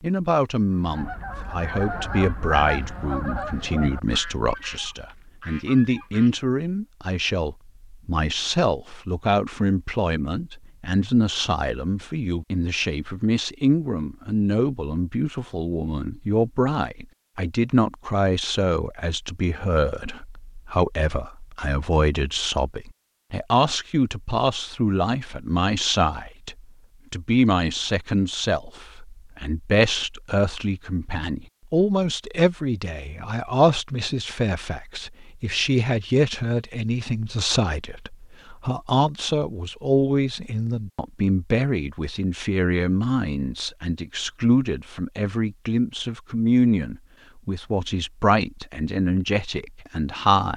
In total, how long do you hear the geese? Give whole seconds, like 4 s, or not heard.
6 s.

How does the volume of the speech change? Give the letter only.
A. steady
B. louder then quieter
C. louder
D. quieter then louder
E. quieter
A.